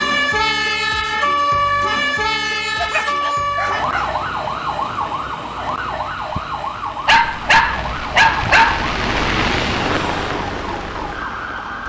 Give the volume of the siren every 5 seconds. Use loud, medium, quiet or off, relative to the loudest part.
loud, medium, medium.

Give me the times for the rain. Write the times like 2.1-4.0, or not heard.
3.7-11.8.